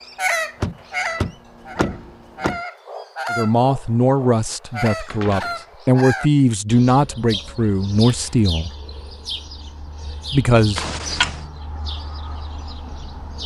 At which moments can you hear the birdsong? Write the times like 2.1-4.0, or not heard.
0.0-13.4.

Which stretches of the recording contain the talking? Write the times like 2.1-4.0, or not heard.
3.3-8.7, 10.3-10.8.